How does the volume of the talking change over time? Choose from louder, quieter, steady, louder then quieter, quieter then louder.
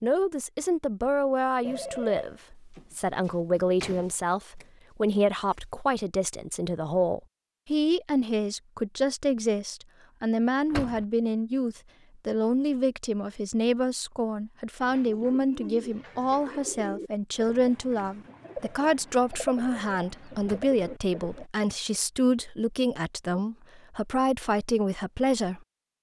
steady.